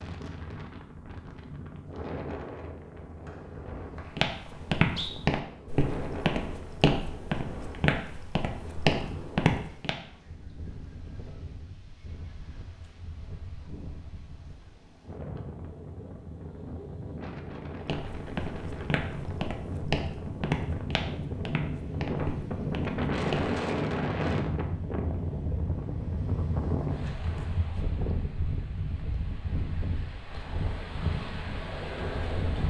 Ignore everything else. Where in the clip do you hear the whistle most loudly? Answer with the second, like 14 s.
5 s.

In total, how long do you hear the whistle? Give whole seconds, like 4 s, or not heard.
2 s.